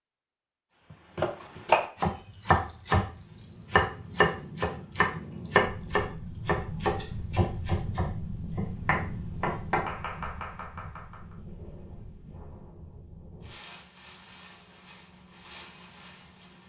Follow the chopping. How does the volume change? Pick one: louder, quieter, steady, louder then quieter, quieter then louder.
quieter.